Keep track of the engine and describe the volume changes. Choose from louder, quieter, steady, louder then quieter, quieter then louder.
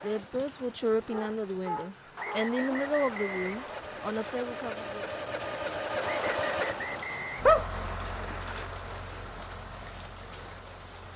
louder then quieter.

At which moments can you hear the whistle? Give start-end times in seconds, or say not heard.
2.1-3.9, 6.1-7.5.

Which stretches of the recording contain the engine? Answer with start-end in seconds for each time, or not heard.
0.0-11.1.